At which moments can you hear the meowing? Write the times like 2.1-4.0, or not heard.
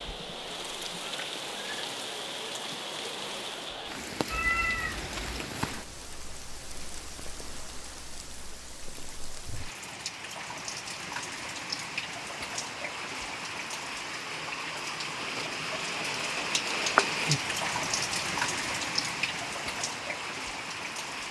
4.3-5.5.